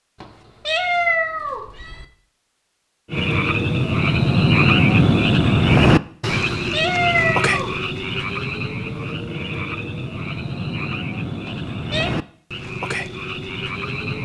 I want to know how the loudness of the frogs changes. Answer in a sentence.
The volume of the frogs goes down.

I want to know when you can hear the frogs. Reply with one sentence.
The frogs can be heard from 3.1 to 14.1 s.